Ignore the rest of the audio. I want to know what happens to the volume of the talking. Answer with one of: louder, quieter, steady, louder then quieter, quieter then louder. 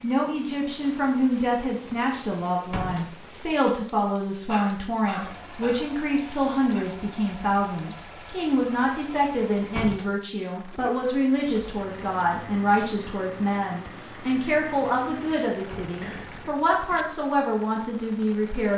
steady.